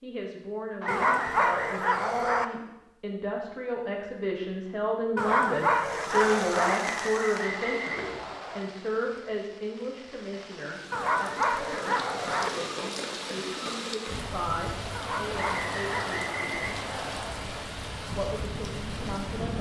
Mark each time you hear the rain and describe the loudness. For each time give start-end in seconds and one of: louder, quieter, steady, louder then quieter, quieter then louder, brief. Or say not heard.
5.7-19.5 quieter then louder.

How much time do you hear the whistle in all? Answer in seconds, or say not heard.
5 s.